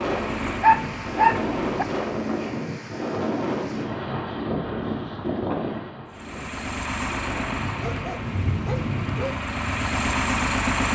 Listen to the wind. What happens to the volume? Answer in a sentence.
The loudness of the wind goes down, then up.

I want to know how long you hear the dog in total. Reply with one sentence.
You can hear the dog for 3 seconds altogether.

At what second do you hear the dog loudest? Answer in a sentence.
The volume of the dog peaks at 1 second.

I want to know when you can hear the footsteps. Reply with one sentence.
You can't hear the footsteps here.